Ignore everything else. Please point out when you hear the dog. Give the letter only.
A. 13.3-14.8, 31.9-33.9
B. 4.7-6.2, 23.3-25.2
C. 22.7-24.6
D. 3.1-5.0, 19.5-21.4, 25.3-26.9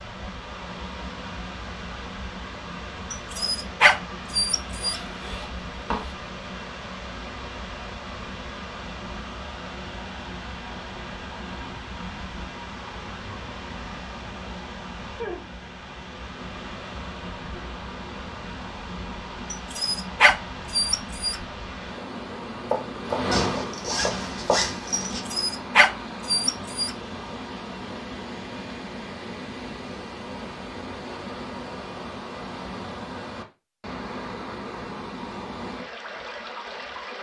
D.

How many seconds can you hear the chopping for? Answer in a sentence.
The chopping can be heard for 2 seconds in total.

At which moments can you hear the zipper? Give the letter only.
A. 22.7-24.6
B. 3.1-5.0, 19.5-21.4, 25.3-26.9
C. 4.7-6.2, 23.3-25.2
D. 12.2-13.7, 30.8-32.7
C.